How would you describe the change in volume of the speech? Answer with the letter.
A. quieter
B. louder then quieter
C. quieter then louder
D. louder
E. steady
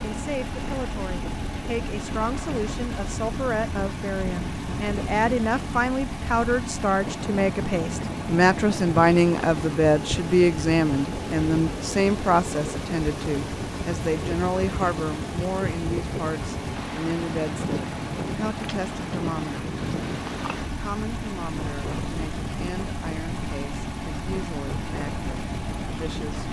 B.